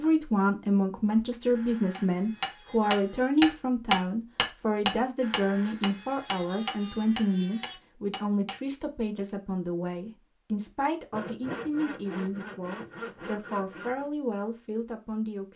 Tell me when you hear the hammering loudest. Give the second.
4 s.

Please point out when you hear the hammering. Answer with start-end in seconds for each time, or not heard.
1.9-8.6.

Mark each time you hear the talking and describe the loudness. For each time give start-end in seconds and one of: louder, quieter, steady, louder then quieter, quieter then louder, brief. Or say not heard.
0.0-15.5 quieter.